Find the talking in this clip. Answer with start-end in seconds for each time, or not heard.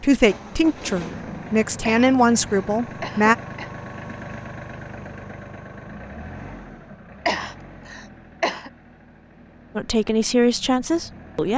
0.0-3.4, 9.8-11.5.